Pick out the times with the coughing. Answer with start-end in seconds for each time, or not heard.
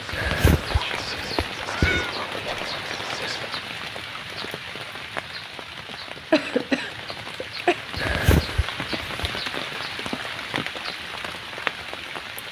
5.8-7.8.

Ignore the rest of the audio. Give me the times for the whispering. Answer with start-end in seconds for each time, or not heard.
0.0-3.5.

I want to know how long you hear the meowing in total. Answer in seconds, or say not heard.
3 s.